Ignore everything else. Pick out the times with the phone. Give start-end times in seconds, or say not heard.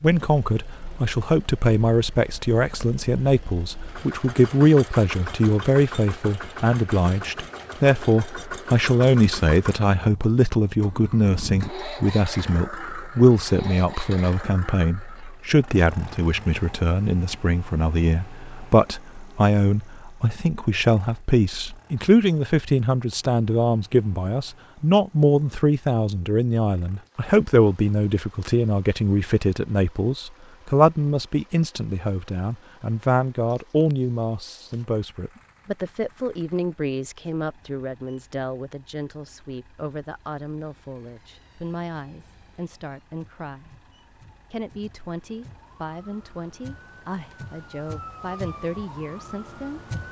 not heard.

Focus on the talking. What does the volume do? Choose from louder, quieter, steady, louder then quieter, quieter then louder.
quieter.